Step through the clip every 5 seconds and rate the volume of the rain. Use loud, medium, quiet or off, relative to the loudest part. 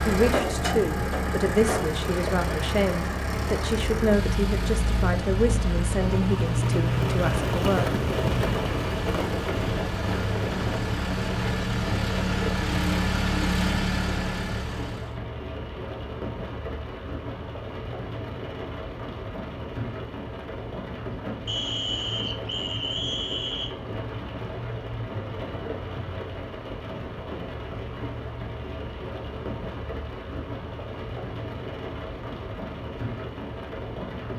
medium, loud, medium, medium, medium, medium, medium.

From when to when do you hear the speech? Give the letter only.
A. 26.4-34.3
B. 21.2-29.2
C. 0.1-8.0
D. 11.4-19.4
C.